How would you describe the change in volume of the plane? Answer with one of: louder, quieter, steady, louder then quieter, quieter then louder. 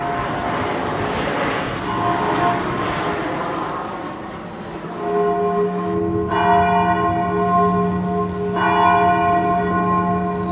quieter.